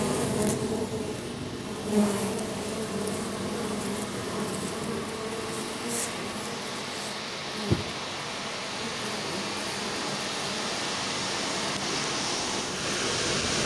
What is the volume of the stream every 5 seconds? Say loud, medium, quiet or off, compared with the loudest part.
medium, medium, loud.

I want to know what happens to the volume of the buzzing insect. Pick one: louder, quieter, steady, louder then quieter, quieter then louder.
quieter.